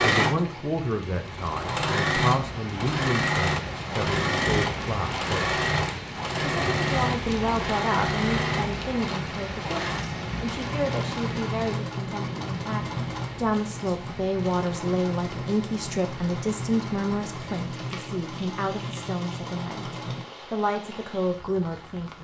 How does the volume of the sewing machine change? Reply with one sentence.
The volume of the sewing machine goes down.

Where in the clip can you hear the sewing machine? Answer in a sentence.
The sewing machine can be heard from 0.0 to 20.2 s.